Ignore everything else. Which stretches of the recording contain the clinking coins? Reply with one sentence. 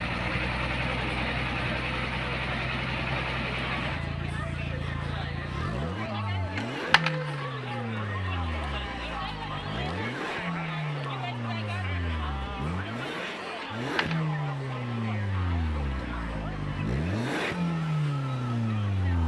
The clinking coins can be heard from 6.5 to 7.4 s and from 13.6 to 14.3 s.